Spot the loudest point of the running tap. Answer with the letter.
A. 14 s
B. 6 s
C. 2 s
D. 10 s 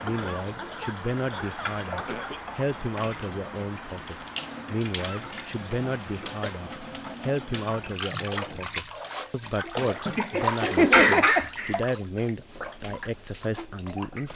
D.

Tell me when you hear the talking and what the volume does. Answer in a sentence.
The talking can be heard from 0.0 to 14.3 s, at a steady volume.